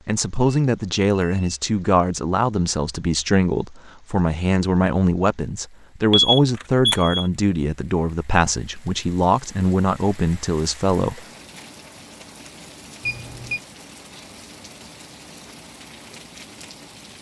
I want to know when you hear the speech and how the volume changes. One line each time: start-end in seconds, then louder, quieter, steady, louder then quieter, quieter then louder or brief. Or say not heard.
0.1-11.2 steady.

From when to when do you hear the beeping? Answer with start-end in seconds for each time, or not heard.
0.5-1.5, 6.1-7.2, 13.0-13.6.